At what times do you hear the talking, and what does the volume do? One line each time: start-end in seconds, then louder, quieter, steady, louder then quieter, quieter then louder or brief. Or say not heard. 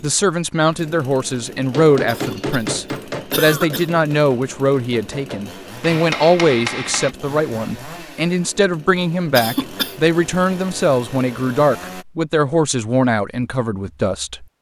0.0-14.4 steady.